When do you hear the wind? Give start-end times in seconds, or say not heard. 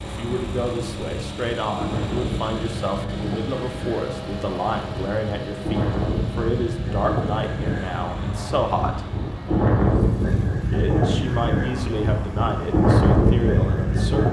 0.0-14.2.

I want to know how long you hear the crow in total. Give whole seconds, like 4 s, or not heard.
not heard.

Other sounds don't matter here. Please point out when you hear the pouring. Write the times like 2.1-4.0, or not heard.
not heard.